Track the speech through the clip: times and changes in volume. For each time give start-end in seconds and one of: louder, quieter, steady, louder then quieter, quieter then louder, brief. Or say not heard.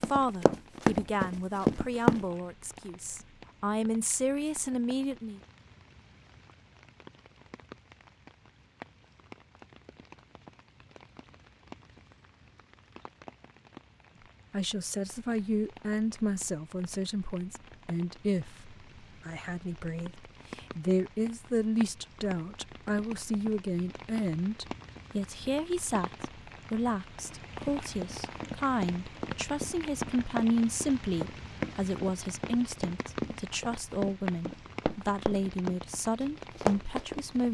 0.1-5.4 quieter then louder
14.5-37.5 steady.